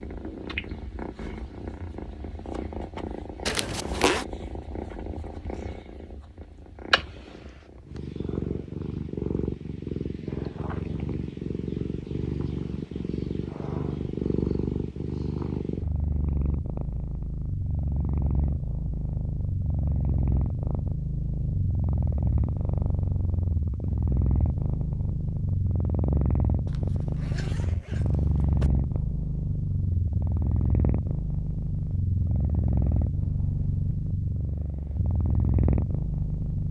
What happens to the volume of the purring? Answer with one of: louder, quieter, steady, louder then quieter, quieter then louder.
louder.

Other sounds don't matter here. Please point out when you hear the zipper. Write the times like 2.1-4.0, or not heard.
3.5-4.2, 26.6-28.7.